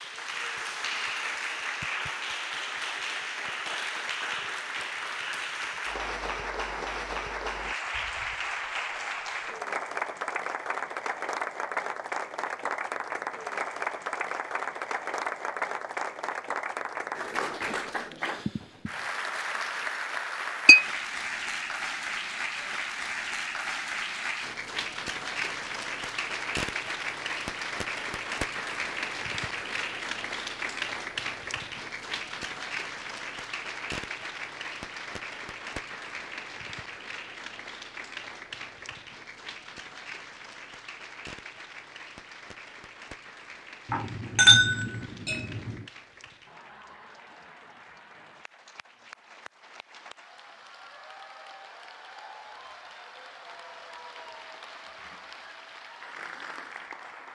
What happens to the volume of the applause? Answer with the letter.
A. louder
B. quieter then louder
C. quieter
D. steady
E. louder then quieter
C.